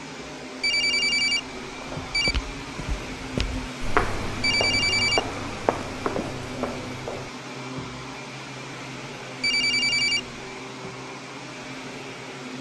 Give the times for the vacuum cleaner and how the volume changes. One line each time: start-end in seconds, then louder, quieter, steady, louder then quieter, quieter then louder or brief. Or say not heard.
0.0-12.5 steady.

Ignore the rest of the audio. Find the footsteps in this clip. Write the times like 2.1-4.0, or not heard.
2.0-7.3.